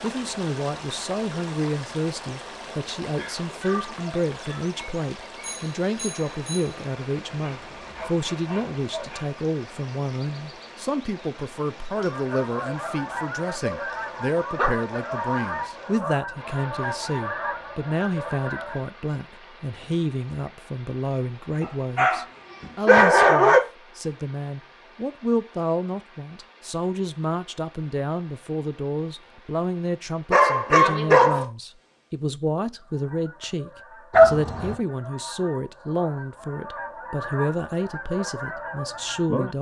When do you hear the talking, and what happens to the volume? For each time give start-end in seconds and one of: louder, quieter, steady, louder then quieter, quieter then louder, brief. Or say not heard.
0.0-39.5 steady.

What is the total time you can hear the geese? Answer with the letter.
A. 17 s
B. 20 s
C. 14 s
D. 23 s
C.